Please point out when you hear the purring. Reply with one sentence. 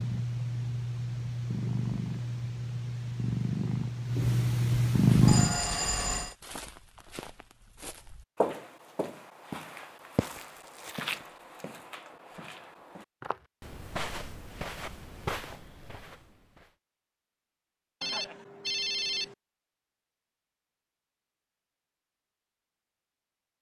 The purring can be heard from 0.0 to 5.6 s.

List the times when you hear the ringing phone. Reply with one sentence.
The ringing phone can be heard from 5.2 to 6.3 s and from 18.0 to 19.4 s.